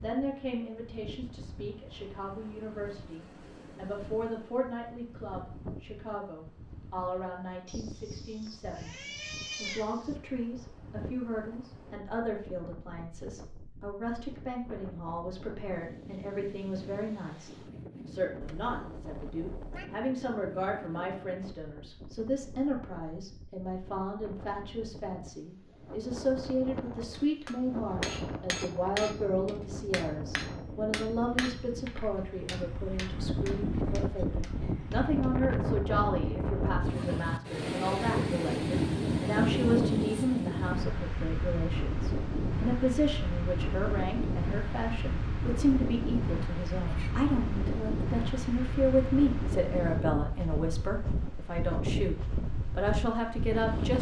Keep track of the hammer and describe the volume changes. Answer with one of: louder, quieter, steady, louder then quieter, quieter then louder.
quieter.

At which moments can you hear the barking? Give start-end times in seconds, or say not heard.
not heard.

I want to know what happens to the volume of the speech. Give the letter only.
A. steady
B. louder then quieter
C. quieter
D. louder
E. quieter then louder
D.